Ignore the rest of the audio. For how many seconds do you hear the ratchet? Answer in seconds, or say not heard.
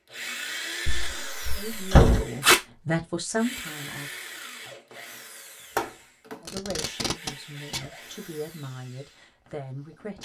not heard.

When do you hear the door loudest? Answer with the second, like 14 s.
2 s.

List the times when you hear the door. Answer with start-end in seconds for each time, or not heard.
0.8-2.2, 5.8-6.3.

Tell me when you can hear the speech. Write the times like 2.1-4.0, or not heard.
1.6-4.1, 6.4-10.1.